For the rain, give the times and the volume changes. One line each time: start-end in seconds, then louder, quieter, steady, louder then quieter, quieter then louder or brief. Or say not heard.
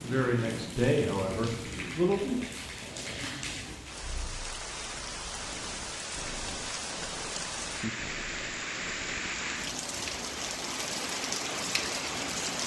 0.0-12.6 louder.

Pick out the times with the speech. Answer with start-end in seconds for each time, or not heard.
0.0-2.4.